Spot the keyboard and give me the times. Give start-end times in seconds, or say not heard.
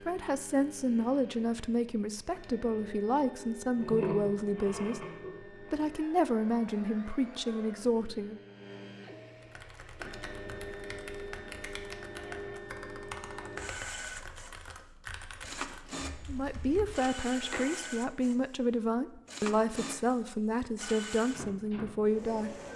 9.4-17.1.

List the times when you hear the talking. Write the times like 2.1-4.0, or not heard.
0.1-8.4, 16.2-22.6.